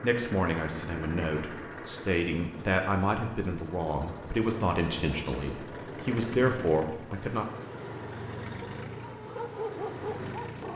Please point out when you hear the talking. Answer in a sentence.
You can hear the talking from 0.0 to 7.5 s.